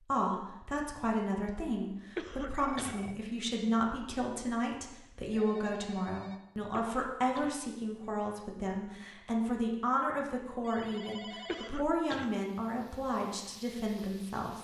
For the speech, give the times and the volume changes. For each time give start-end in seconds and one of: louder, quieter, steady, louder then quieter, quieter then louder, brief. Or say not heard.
0.1-14.6 steady.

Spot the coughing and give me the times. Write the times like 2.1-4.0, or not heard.
2.1-3.0, 6.7-7.6, 11.4-12.3.